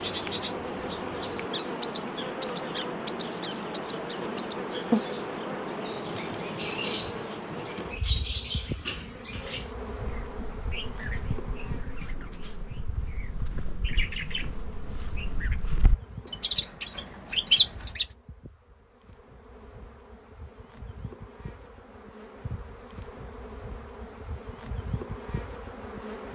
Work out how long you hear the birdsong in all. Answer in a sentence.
The birdsong can be heard for 18 seconds in total.